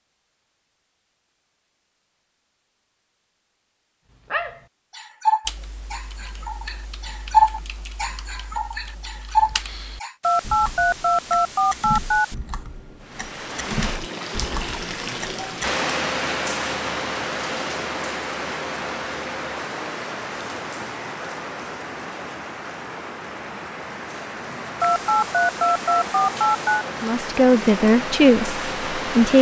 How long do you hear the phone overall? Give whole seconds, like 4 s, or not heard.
4 s.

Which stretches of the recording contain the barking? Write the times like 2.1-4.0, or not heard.
4.3-10.2.